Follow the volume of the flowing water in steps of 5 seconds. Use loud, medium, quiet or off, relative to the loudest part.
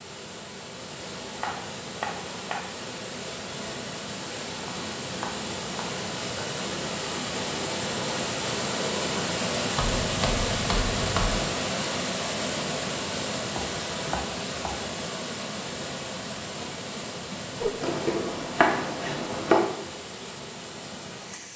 medium, loud, loud, medium, medium.